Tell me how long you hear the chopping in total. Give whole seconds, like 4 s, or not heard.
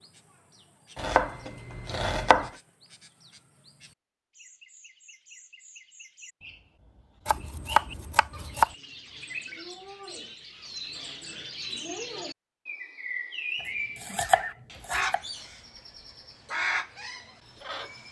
4 s.